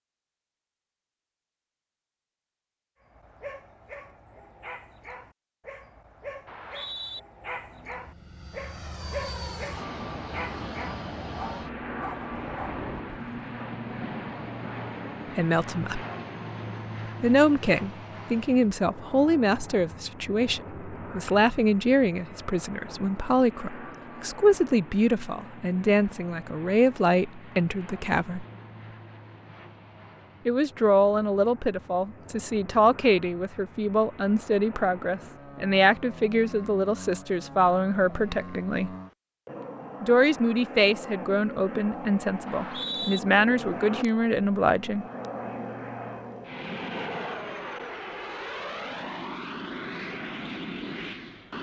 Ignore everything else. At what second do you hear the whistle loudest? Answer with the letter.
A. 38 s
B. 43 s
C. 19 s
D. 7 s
B.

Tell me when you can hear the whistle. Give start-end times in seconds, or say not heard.
6.5-7.2, 42.5-43.2.